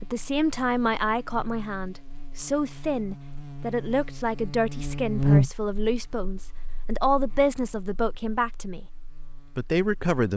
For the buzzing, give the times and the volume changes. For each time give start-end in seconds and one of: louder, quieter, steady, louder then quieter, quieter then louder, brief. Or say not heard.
0.0-10.2 louder then quieter.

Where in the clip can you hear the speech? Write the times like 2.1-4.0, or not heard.
0.0-8.8, 9.6-10.3.